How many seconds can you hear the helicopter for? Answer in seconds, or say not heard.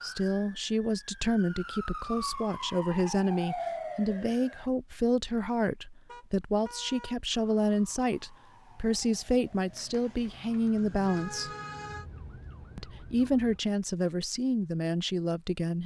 not heard.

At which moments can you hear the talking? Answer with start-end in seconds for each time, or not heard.
0.0-11.6, 12.8-15.8.